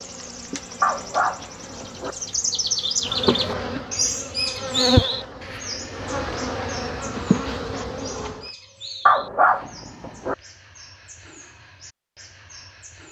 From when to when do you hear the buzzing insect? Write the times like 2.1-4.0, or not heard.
0.0-8.5.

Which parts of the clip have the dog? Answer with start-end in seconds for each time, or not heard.
0.8-2.1, 9.1-10.3.